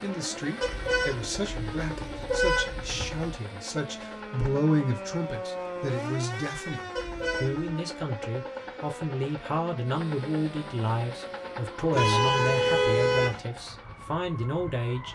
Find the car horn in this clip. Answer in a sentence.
You can hear the car horn from 0.6 to 3.4 s, from 7.0 to 7.7 s and from 11.9 to 13.4 s.